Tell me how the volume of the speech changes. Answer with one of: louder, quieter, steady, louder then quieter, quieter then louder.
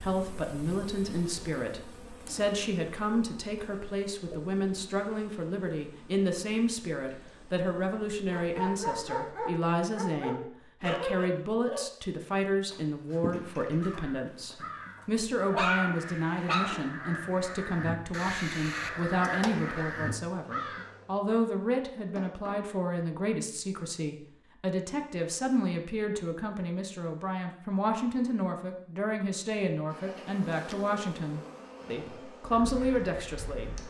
steady.